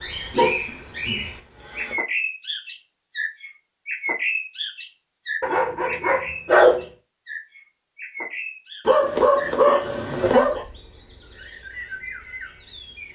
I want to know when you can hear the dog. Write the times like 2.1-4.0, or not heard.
0.3-1.9, 5.4-6.8, 8.8-10.7.